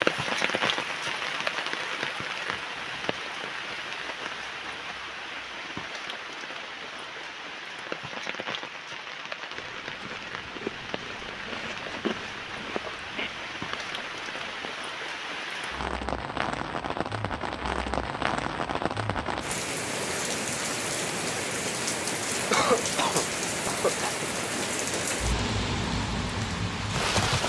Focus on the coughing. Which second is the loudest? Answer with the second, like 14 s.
23 s.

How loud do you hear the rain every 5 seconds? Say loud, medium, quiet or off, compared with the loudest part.
loud, medium, medium, loud, loud, loud.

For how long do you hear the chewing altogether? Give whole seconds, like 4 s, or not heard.
5 s.